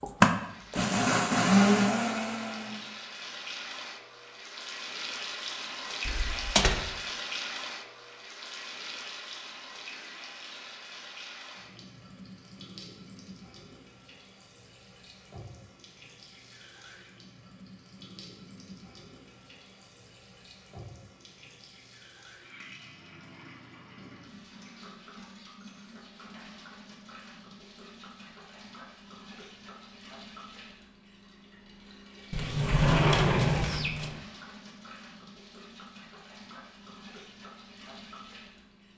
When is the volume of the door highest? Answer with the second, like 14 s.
33 s.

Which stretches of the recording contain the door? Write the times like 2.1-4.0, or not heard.
6.0-6.7, 32.3-34.1.